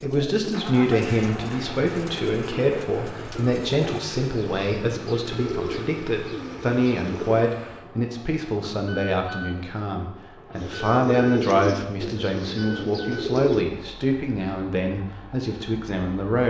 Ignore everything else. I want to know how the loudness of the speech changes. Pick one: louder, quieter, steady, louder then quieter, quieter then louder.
steady.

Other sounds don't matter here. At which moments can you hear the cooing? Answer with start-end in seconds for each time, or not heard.
0.0-7.5, 10.6-13.7.